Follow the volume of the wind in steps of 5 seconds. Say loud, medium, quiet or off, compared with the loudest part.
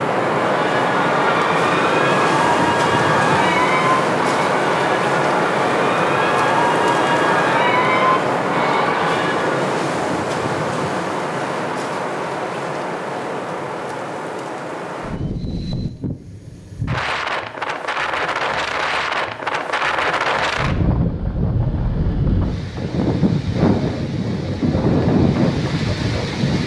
loud, loud, medium, medium, loud, loud.